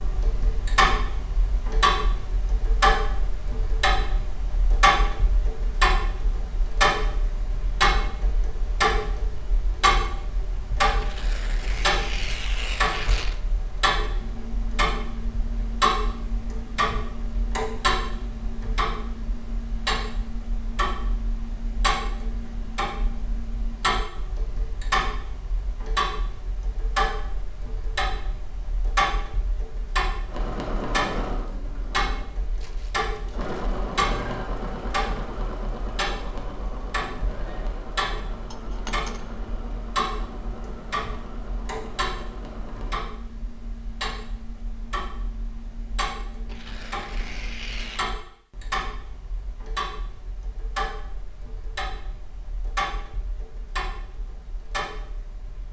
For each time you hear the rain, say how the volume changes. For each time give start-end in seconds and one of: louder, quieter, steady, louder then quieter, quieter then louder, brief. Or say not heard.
not heard.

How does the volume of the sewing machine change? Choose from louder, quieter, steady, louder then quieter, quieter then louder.
quieter.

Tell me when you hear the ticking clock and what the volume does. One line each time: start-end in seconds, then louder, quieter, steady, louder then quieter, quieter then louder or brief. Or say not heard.
0.0-55.6 quieter.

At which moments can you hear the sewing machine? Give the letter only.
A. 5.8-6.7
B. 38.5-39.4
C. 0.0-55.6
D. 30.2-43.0
D.